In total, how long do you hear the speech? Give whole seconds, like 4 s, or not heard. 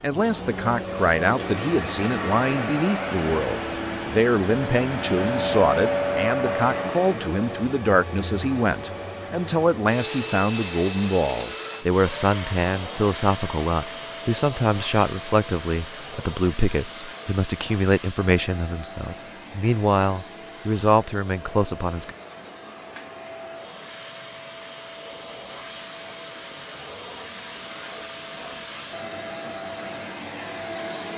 22 s.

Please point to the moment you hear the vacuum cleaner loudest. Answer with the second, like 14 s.
6 s.